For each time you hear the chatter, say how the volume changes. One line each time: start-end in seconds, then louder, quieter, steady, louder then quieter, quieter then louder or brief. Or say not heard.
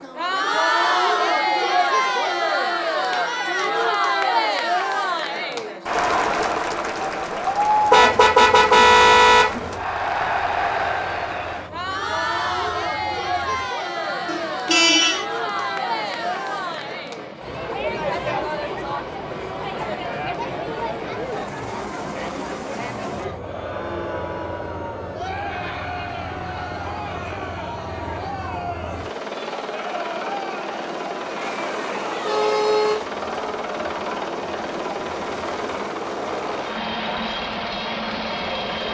0.0-38.9 quieter.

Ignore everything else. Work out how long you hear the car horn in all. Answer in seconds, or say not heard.
4 s.